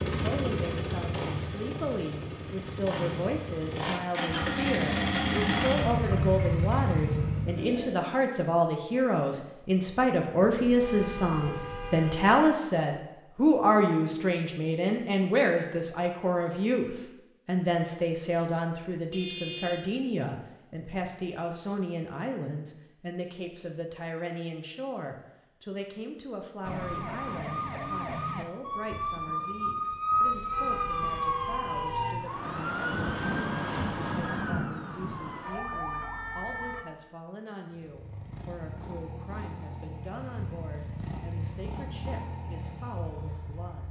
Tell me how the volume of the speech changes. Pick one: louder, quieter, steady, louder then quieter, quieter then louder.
louder then quieter.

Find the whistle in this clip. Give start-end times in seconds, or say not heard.
not heard.